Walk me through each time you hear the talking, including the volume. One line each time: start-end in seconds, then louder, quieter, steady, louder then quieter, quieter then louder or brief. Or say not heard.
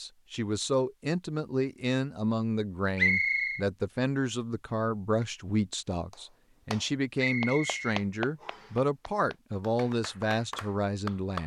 0.0-11.4 steady.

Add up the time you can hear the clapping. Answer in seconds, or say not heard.
5 s.